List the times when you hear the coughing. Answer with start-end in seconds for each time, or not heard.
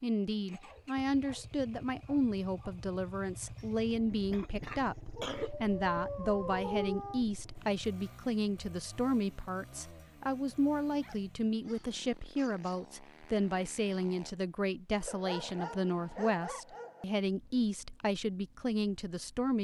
3.5-5.5.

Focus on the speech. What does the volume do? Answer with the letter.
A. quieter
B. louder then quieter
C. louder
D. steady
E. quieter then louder
D.